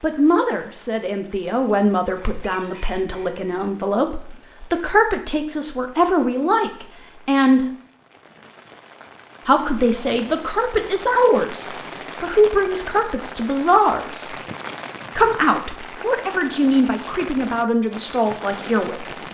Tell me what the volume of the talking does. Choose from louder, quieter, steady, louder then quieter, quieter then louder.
steady.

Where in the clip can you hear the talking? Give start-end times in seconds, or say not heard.
0.0-7.7, 9.4-14.3, 15.2-19.2.